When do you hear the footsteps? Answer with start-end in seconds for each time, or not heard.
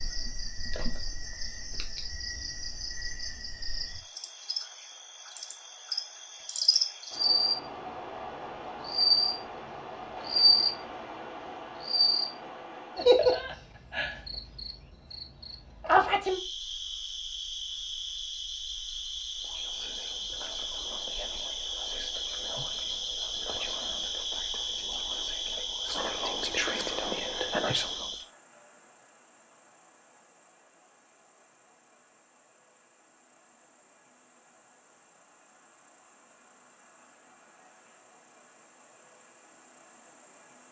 not heard.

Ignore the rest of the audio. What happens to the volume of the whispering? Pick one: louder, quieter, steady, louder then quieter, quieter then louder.
louder.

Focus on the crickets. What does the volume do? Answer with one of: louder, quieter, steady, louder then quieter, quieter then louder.
louder then quieter.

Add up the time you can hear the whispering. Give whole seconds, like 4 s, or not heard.
9 s.